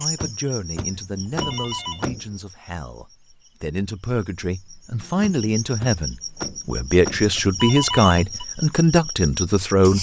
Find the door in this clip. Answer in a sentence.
The door can be heard from 0.1 to 2.4 s and from 5.2 to 7.2 s.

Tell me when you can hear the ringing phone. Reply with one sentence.
You can hear the ringing phone from 0.9 to 2.1 s and from 7.3 to 8.4 s.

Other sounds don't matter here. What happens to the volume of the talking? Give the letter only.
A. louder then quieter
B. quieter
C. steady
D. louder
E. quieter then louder
D.